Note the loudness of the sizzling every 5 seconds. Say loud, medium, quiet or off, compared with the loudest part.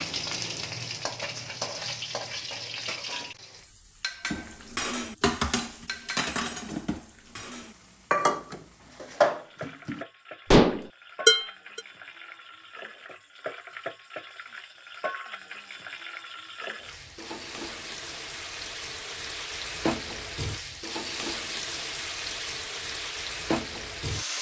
loud, quiet, medium, loud, loud.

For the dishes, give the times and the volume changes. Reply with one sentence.
You can hear the dishes from 4.3 to 11.8 s, getting louder.